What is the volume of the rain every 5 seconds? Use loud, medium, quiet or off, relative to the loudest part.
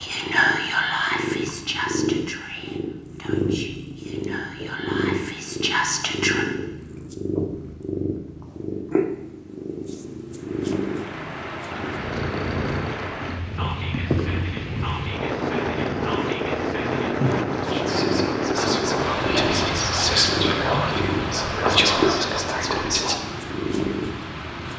off, off, medium, loud, medium.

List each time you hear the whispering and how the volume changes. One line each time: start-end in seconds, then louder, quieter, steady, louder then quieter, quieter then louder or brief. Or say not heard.
0.0-6.5 quieter then louder
13.6-23.1 louder.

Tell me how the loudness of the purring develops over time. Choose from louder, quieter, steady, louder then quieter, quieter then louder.
steady.